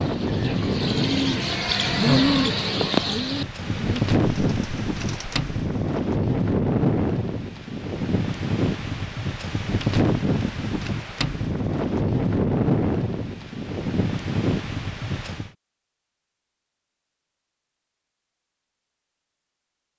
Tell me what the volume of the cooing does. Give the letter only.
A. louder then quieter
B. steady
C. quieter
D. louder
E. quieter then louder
A.